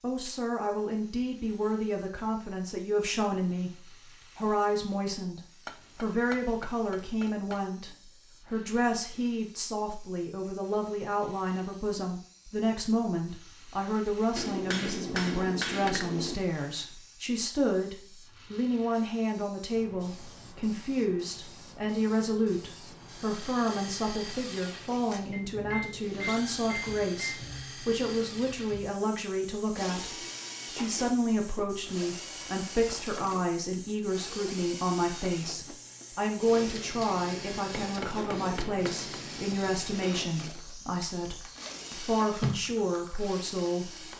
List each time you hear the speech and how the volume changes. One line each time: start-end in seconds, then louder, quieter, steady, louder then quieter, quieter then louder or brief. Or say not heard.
0.0-44.1 steady.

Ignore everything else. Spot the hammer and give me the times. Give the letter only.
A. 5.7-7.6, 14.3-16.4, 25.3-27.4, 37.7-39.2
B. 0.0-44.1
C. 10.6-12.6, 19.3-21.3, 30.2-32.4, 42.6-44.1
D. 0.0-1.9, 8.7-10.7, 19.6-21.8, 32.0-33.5
A.